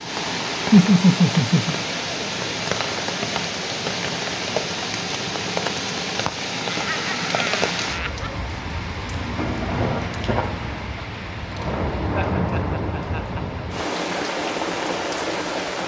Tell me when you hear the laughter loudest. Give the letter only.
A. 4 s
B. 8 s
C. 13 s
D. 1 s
D.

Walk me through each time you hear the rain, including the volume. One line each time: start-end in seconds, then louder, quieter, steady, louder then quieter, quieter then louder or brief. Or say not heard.
0.0-15.8 steady.